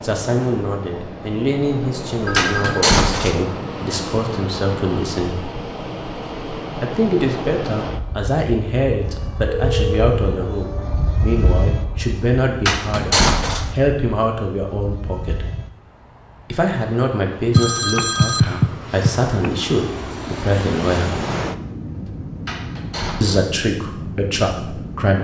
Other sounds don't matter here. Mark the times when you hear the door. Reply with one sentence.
You can hear the door from 2.4 to 3.5 s, from 12.7 to 13.8 s and from 22.4 to 23.6 s.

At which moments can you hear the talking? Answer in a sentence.
The talking can be heard from 0.0 to 5.4 s, from 6.8 to 15.4 s, from 16.5 to 21.1 s and from 23.2 to 25.1 s.